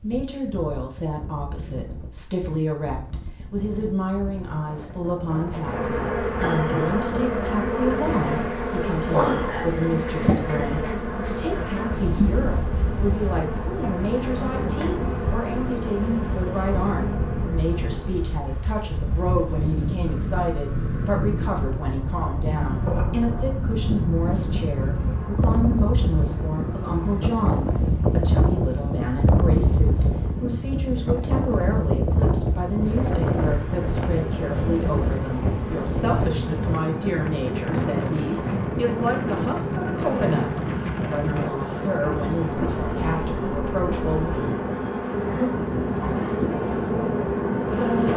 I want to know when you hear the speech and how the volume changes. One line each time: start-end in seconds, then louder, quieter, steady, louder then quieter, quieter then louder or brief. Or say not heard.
0.0-44.4 steady.